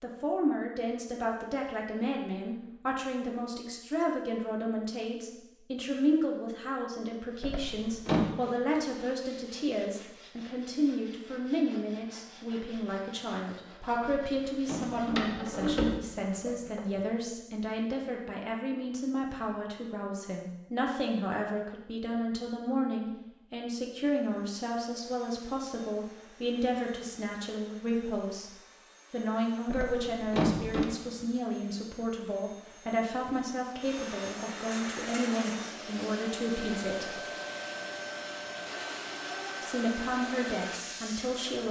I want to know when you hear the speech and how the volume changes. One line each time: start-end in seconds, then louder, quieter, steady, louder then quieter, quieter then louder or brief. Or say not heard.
0.0-37.2 steady
39.6-41.6 brief.